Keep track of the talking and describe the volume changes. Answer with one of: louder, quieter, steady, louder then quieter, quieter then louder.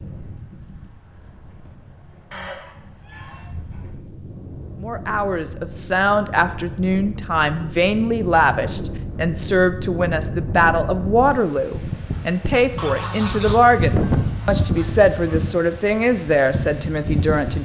steady.